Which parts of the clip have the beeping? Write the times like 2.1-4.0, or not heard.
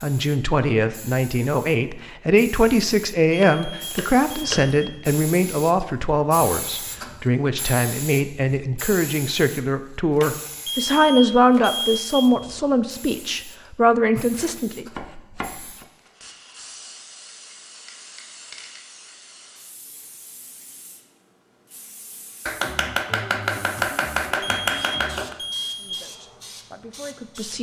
3.4-4.7, 10.7-12.2, 24.4-26.0.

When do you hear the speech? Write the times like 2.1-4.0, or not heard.
0.0-14.8, 25.6-27.5.